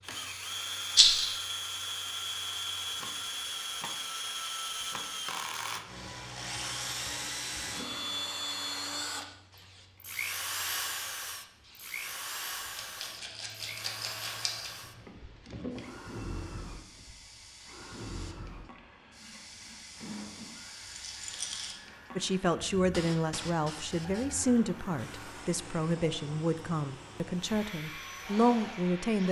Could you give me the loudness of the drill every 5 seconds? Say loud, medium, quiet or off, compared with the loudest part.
loud, loud, loud, medium, quiet, medium.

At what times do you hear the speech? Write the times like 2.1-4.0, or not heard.
22.1-29.2.